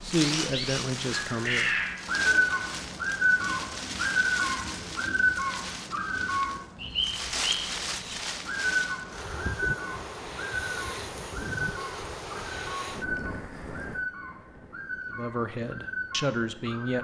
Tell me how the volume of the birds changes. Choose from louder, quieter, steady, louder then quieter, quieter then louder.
quieter.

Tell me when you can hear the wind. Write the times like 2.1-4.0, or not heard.
0.0-16.8.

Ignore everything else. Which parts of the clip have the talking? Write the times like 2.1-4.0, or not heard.
0.0-1.7, 15.1-16.9.